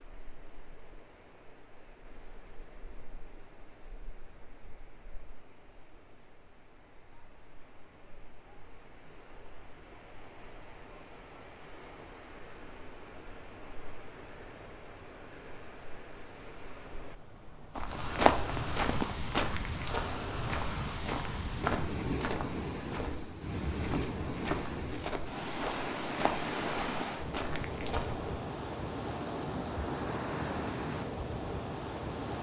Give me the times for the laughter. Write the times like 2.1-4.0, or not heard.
not heard.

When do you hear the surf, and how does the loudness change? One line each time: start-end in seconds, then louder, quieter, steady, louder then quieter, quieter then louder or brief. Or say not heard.
0.0-32.3 louder.